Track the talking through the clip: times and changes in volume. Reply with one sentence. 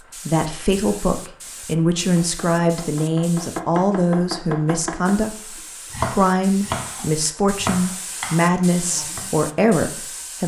The talking can be heard from 0.2 to 10.4 s, at a steady volume.